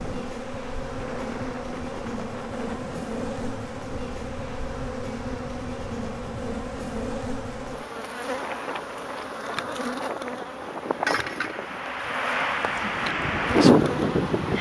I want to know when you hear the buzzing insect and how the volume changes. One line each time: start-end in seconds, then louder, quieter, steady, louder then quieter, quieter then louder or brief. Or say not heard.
0.0-14.5 steady.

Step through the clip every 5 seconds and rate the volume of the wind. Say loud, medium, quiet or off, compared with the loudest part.
quiet, quiet, loud.